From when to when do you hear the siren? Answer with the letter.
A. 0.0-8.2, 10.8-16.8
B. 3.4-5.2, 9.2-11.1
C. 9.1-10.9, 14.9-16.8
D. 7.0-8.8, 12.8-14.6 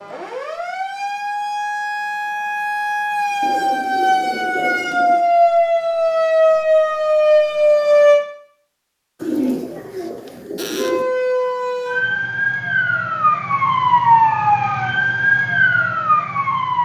A.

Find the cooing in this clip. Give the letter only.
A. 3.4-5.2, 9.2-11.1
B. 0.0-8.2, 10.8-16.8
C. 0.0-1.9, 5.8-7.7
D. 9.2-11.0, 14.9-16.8
A.